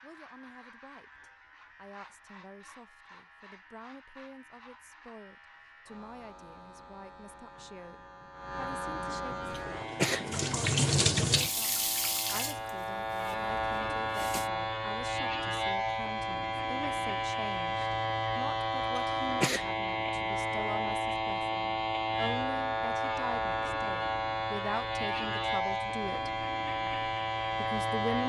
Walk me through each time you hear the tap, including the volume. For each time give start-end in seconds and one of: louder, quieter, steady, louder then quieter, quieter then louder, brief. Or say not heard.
9.4-14.5 louder then quieter.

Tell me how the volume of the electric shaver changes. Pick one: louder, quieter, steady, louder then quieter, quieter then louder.
louder.